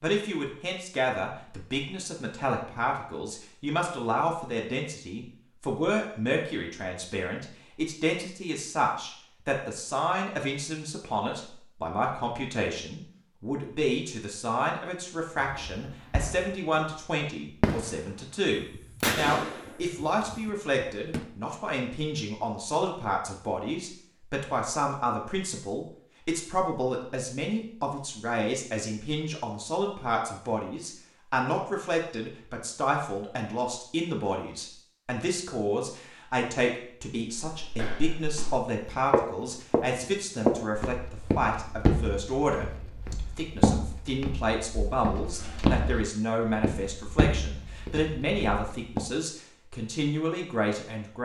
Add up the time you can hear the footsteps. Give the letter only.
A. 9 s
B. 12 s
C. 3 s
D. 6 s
B.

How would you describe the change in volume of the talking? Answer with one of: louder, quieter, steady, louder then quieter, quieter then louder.
steady.